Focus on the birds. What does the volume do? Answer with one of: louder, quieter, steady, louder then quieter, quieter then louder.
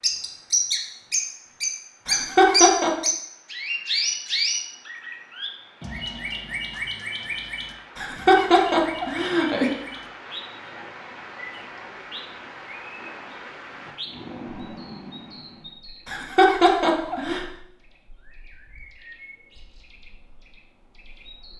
quieter.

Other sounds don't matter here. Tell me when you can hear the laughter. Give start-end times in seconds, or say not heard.
2.0-2.9, 8.0-9.7, 16.1-17.4.